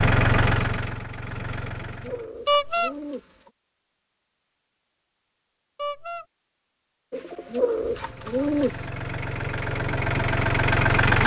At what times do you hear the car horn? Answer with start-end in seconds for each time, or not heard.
2.5-3.0, 5.8-6.2.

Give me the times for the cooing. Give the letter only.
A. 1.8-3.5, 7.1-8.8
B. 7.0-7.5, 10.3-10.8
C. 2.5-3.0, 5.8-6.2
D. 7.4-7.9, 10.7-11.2
A.